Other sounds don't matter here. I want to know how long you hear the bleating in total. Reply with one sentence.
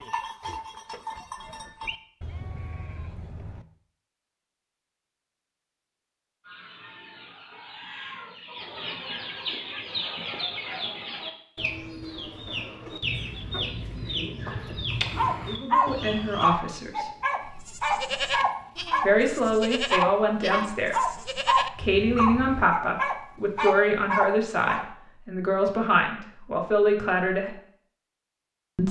You can hear the bleating for 9 seconds altogether.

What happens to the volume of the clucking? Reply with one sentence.
The loudness of the clucking goes up.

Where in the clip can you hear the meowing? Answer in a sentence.
You can't hear the meowing here.